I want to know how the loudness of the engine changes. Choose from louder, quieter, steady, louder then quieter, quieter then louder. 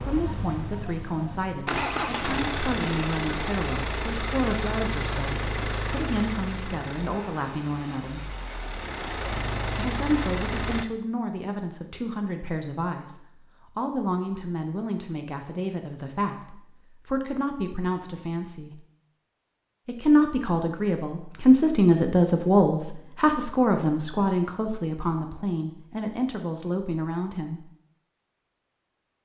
quieter then louder.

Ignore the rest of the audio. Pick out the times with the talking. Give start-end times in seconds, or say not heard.
0.0-8.3, 9.7-18.8, 19.9-27.6.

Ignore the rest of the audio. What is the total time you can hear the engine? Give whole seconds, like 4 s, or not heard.
11 s.